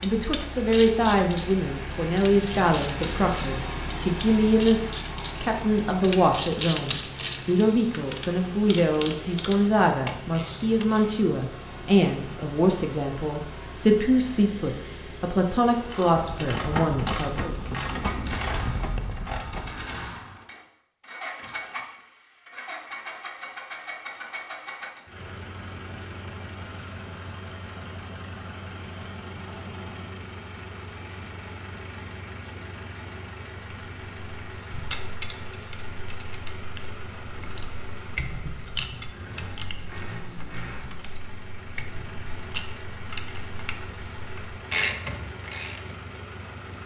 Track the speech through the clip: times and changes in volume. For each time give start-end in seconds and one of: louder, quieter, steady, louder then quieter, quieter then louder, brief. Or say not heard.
0.0-17.6 steady.